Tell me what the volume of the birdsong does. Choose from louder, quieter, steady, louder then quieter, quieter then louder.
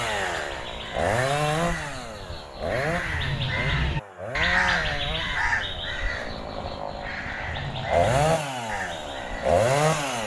louder then quieter.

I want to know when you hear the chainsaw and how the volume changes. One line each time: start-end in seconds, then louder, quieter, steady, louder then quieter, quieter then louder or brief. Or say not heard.
0.0-10.2 quieter then louder.